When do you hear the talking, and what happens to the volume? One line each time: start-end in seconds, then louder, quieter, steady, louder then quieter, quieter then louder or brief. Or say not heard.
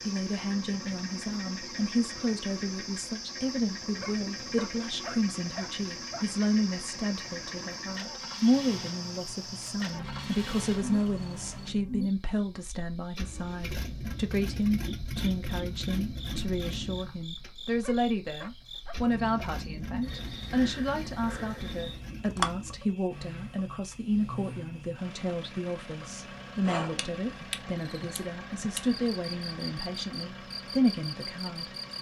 0.0-31.7 steady.